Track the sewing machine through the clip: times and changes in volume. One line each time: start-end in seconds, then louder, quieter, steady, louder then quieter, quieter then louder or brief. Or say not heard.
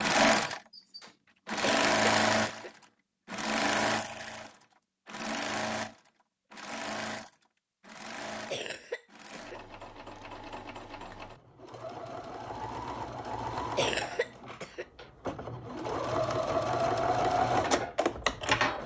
0.0-18.8 quieter then louder.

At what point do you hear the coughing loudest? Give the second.
14 s.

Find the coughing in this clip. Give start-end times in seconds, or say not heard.
1.6-2.7, 8.5-9.6, 13.8-14.8.